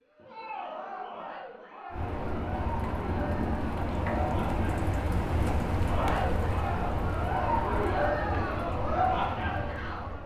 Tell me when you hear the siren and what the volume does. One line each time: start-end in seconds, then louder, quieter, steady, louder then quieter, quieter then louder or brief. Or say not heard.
not heard.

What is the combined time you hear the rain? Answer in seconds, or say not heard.
8 s.